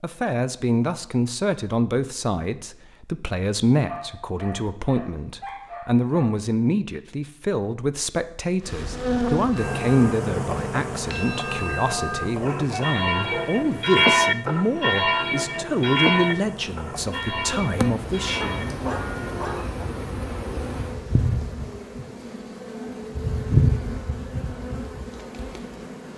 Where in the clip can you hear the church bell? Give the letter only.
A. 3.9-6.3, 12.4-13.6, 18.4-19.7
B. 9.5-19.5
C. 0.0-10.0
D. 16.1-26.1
B.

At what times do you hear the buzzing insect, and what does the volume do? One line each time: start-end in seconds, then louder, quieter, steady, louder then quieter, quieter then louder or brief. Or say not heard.
8.6-26.1 quieter then louder.